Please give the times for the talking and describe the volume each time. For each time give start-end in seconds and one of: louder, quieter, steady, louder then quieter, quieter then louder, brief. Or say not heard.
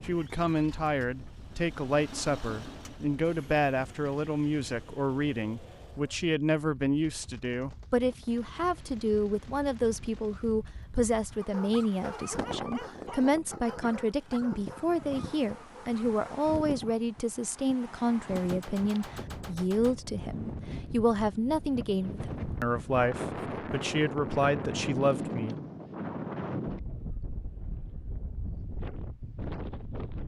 0.1-25.6 steady.